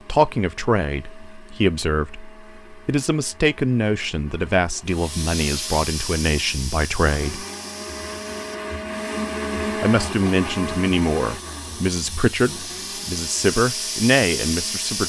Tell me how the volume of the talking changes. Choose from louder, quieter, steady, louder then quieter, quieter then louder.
steady.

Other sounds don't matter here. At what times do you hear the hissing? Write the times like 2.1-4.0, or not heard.
4.8-15.0.